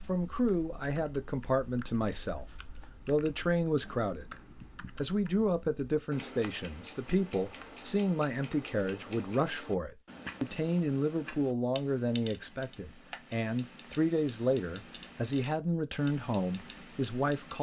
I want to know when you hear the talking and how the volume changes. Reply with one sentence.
The talking can be heard briefly from 0.1 to 2.5 s; briefly from 3.0 to 4.3 s; and from 5.0 to 17.5 s, at a steady volume.